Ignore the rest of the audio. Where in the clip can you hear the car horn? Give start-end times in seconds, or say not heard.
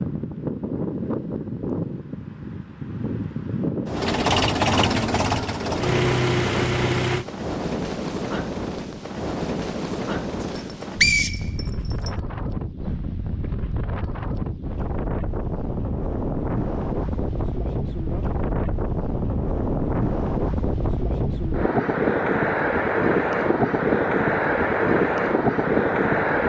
not heard.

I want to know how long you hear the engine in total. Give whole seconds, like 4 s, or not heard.
3 s.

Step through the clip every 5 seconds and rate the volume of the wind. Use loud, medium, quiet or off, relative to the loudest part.
medium, medium, medium, medium, loud, loud.